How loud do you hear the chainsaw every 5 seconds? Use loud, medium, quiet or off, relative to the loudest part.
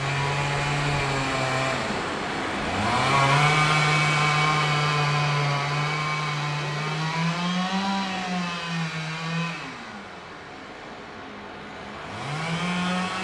loud, loud, medium.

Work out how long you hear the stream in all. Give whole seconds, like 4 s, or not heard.
13 s.